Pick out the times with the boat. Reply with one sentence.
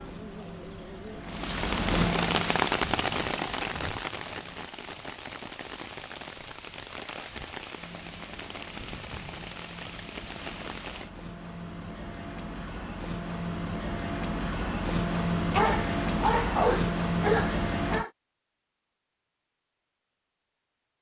You can hear the boat from 0.0 to 4.7 s and from 7.8 to 18.1 s.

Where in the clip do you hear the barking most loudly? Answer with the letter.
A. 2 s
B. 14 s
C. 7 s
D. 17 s
D.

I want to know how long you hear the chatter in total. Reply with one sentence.
The chatter can't be heard in this clip.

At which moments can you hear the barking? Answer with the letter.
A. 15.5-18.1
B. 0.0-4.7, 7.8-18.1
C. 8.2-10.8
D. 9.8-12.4
A.